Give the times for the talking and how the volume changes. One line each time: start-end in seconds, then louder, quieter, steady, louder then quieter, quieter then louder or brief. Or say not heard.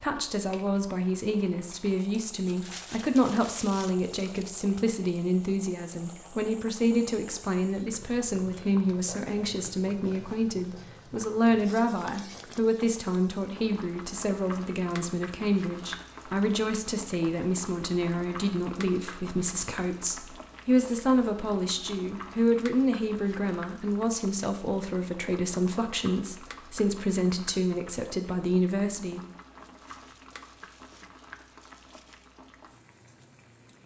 0.0-29.2 steady.